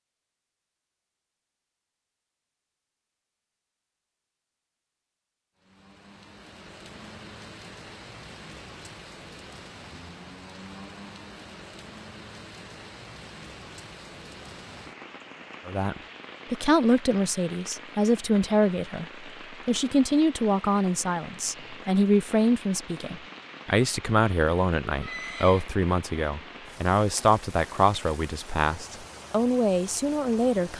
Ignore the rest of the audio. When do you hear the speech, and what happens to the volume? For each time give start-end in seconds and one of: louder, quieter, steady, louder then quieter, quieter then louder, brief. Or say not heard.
15.7-30.7 steady.